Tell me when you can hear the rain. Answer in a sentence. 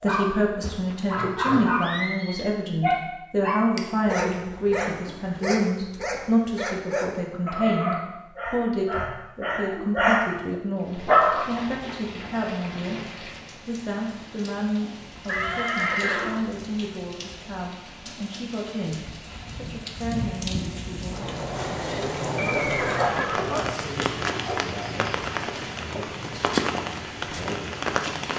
The rain can be heard from 10.8 to 28.3 s.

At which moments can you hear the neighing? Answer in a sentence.
The neighing can be heard from 0.6 to 2.5 s, from 15.2 to 16.5 s and from 22.4 to 23.6 s.